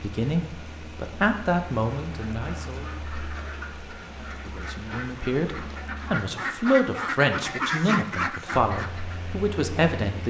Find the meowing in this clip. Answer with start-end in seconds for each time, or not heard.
not heard.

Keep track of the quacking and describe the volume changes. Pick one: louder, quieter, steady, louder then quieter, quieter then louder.
louder.